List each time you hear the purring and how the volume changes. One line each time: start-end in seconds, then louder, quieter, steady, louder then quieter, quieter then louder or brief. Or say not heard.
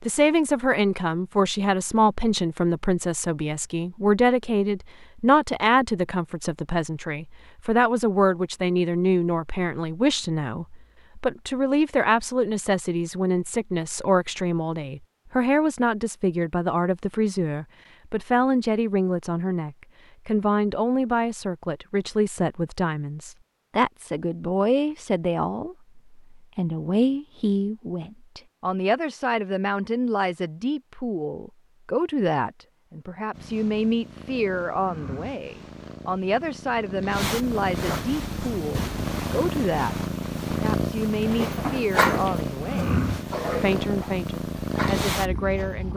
33.3-45.9 louder.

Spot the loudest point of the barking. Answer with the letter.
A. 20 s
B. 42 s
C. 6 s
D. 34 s
B.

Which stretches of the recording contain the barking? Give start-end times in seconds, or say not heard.
41.2-45.8.